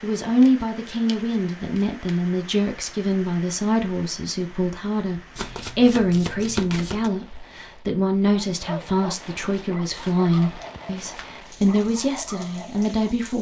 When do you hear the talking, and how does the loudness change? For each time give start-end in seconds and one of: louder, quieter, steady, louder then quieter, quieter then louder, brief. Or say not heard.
0.0-13.3 steady.